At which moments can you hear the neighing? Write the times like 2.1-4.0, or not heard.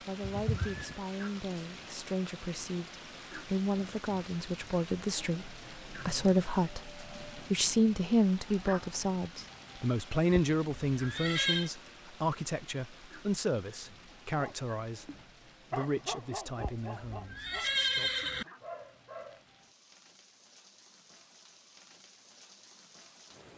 0.2-0.9, 10.3-11.7, 16.6-18.4.